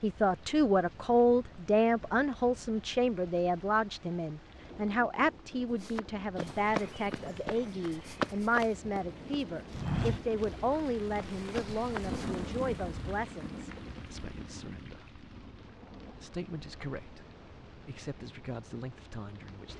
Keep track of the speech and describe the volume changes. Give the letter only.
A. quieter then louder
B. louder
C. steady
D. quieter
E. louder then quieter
D.